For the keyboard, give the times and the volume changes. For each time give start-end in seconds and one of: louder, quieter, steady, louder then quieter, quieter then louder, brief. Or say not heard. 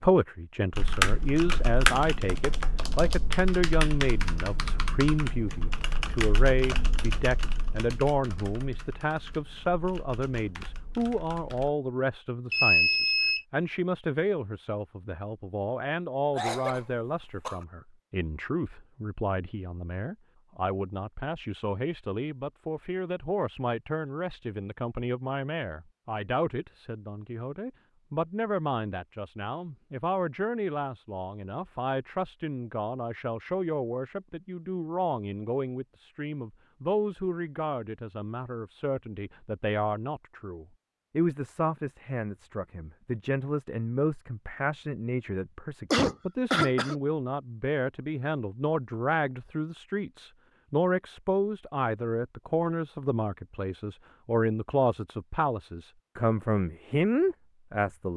0.7-11.8 quieter.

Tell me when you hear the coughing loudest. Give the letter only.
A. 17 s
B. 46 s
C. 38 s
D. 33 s
B.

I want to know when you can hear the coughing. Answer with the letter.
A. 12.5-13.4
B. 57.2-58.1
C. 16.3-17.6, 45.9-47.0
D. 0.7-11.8
C.